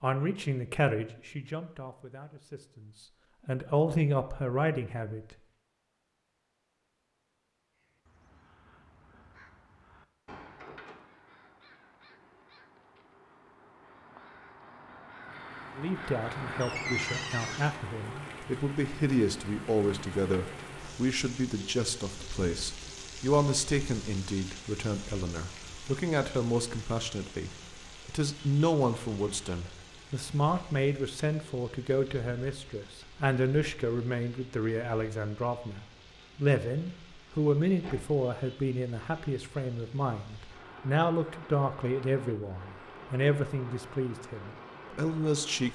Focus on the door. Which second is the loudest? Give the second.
17 s.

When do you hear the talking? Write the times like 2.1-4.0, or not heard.
0.0-5.3, 15.8-45.7.